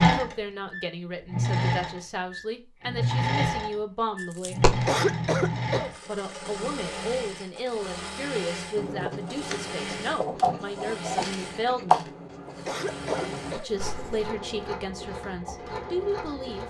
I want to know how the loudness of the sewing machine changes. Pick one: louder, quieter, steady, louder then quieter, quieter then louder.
quieter.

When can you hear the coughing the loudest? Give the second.
5 s.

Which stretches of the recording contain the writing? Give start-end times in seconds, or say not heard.
8.8-14.3.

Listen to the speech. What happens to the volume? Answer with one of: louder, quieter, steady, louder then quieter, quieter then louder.
steady.